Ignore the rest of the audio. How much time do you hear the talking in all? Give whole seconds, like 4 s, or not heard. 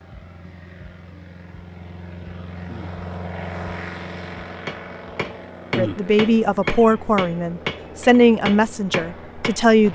4 s.